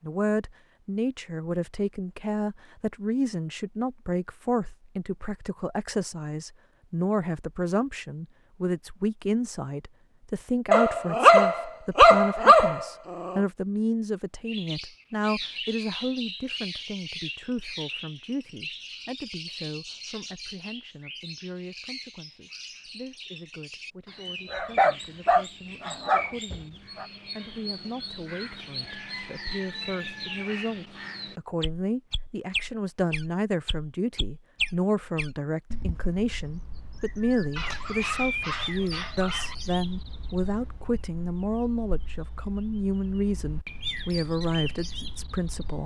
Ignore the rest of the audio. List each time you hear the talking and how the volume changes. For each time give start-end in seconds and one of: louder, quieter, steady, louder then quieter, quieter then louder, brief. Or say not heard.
0.0-45.8 quieter then louder.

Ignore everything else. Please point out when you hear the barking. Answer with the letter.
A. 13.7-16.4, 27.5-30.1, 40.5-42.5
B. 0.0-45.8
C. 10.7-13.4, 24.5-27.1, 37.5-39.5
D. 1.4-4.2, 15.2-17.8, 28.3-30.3
C.